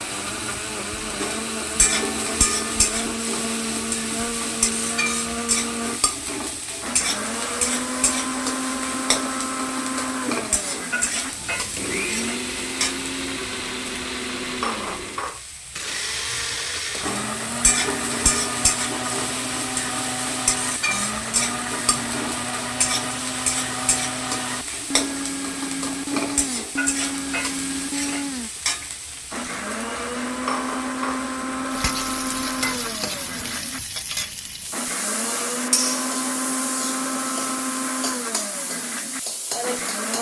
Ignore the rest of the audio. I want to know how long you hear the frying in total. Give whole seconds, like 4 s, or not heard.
40 s.